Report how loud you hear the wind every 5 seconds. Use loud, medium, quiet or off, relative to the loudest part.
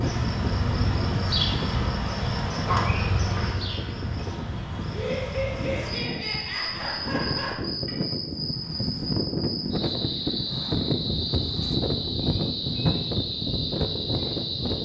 medium, loud, loud.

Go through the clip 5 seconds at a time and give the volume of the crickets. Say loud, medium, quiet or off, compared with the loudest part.
loud, medium, loud.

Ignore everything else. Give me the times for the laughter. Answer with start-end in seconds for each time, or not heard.
4.9-7.7.